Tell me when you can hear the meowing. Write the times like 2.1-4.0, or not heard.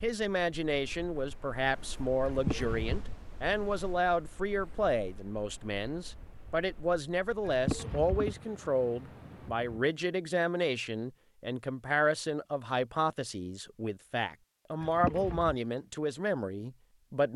2.2-3.0, 7.4-8.3, 14.8-15.6.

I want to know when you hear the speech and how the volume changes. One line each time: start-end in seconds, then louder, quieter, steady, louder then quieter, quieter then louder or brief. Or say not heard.
0.0-17.3 steady.